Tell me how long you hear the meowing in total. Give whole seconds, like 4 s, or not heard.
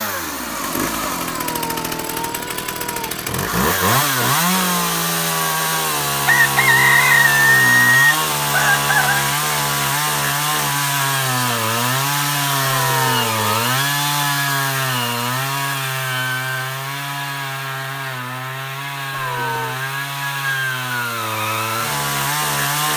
4 s.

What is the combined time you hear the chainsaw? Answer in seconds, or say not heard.
23 s.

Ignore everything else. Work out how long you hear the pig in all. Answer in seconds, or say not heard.
not heard.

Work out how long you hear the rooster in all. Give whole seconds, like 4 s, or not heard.
3 s.